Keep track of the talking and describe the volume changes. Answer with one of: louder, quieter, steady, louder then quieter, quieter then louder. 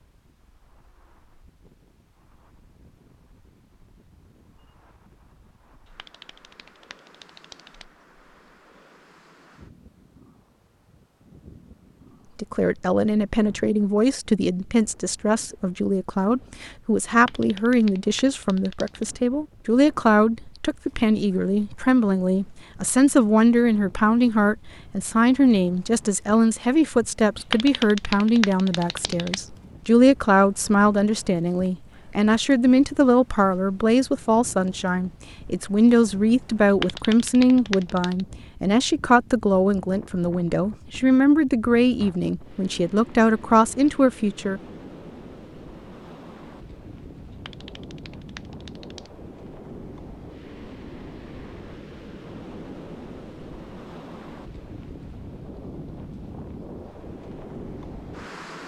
steady.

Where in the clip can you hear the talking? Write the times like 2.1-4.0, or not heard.
12.3-44.6.